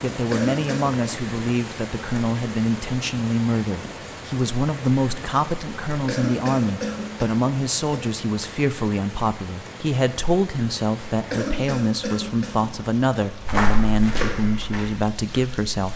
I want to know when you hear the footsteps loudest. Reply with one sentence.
The loudest moment of the footsteps is at 14 seconds.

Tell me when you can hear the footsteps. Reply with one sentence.
You can hear the footsteps from 13.4 to 15.9 s.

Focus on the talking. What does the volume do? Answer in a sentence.
The volume of the talking stays about the same.